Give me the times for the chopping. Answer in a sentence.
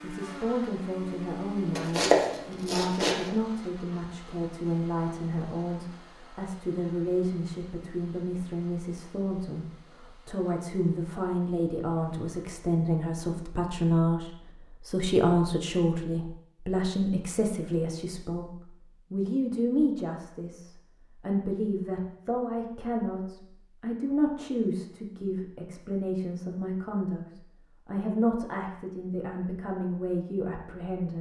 The chopping can be heard from 1.8 to 3.3 s.